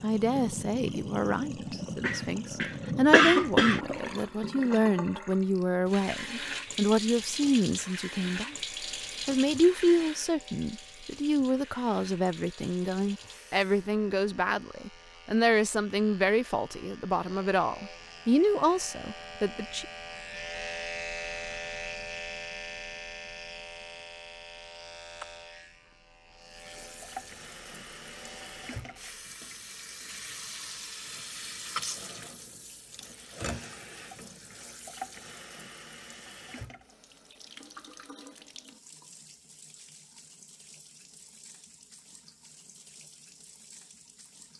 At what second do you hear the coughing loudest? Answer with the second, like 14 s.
3 s.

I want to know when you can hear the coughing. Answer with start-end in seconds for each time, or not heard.
2.0-3.8.